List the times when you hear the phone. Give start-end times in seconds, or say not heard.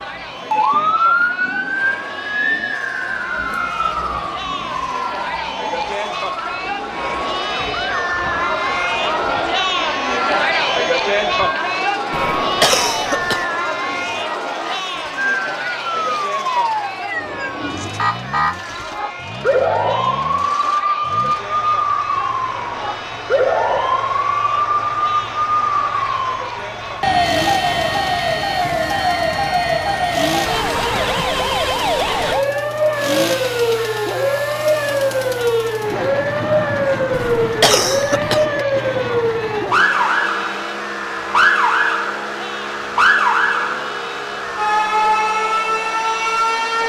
not heard.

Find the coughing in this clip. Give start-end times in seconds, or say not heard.
12.1-13.4, 37.1-38.5.